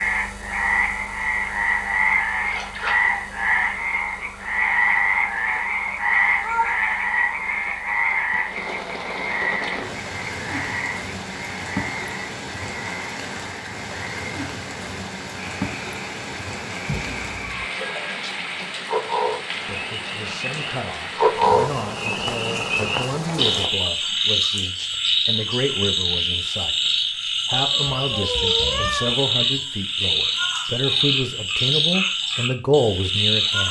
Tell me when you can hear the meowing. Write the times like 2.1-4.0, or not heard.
5.9-6.8, 16.9-17.6, 27.5-29.1.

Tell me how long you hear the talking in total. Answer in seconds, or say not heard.
14 s.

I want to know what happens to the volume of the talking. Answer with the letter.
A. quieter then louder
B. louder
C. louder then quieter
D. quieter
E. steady
B.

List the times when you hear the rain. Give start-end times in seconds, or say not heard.
0.0-23.7.